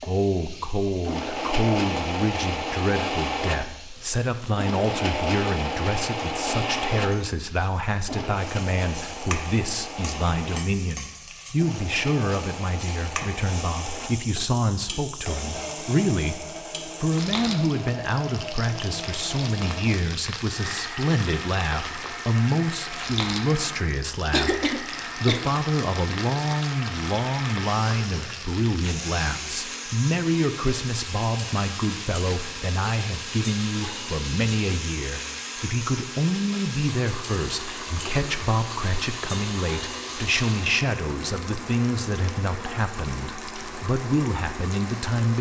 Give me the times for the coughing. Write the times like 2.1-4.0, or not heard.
24.3-25.5.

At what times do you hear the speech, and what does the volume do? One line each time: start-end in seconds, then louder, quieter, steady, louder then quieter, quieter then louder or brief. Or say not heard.
0.1-45.3 steady.